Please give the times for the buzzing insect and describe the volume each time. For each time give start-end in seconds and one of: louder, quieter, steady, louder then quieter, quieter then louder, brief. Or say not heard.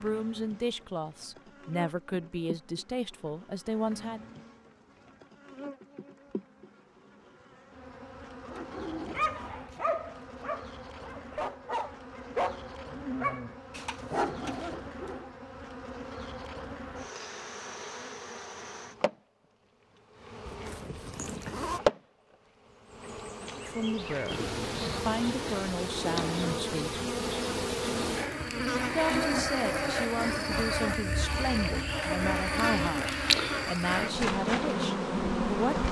0.0-35.8 louder.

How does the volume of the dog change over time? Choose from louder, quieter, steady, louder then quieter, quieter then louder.
quieter then louder.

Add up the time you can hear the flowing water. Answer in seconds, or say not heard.
not heard.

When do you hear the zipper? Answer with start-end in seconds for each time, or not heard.
20.4-21.8.